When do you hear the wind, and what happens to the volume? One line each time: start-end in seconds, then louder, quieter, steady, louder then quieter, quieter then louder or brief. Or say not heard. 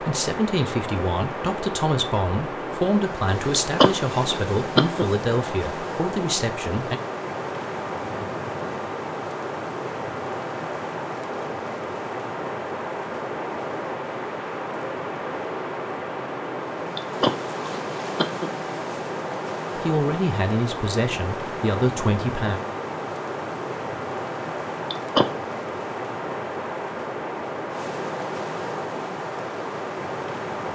0.0-30.7 steady.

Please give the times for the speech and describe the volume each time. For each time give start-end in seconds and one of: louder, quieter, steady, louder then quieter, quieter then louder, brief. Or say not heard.
0.0-7.0 steady
19.8-22.6 brief.